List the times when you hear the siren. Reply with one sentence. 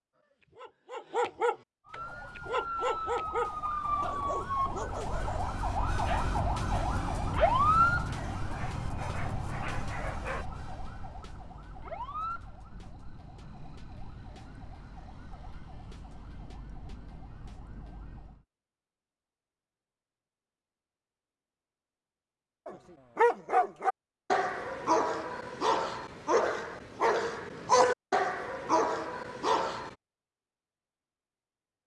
The siren can be heard from 1.9 to 18.4 s.